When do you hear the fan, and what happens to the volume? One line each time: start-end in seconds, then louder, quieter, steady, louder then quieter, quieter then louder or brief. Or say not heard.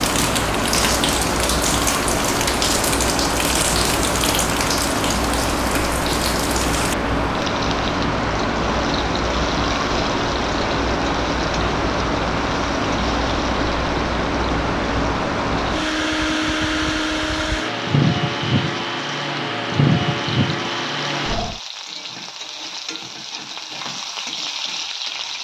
0.0-21.6 steady.